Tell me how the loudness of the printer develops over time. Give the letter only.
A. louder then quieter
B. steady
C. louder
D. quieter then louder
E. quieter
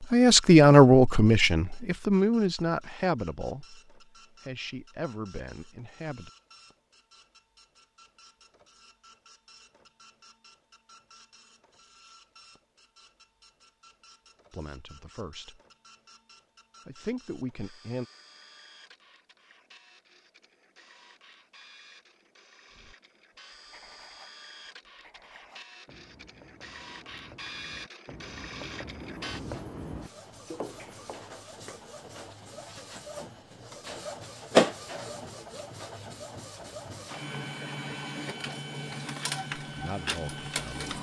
C.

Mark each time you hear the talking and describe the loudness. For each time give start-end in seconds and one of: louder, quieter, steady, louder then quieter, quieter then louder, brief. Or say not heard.
0.0-6.3 quieter
14.5-15.6 brief
16.9-18.1 brief
39.7-40.9 brief.